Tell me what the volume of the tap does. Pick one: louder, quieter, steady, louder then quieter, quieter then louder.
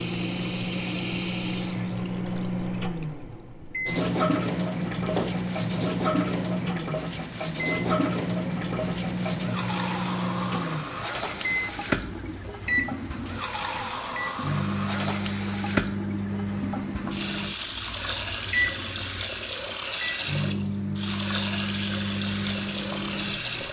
steady.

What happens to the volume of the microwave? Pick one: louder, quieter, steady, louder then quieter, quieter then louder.
steady.